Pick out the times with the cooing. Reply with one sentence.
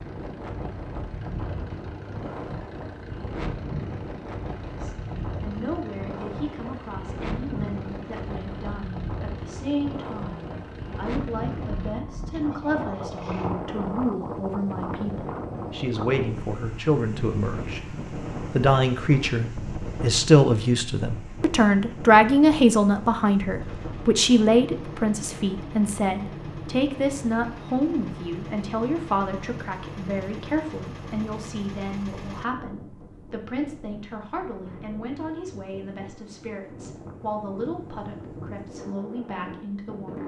The cooing can't be heard in this clip.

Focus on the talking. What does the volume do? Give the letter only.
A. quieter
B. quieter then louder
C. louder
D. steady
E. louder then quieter
E.